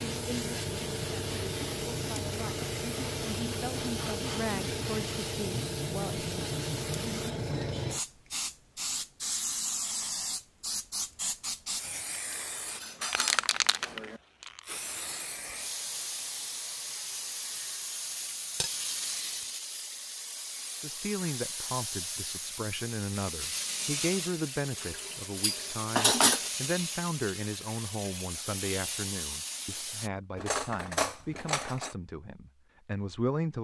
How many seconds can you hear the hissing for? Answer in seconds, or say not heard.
30 s.